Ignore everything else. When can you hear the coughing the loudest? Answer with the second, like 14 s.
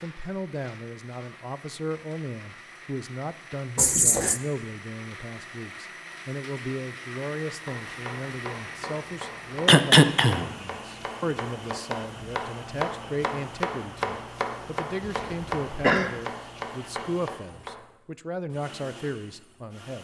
10 s.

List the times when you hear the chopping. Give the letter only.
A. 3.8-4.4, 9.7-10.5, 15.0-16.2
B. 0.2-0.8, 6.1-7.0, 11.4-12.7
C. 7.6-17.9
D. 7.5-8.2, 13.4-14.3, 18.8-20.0
C.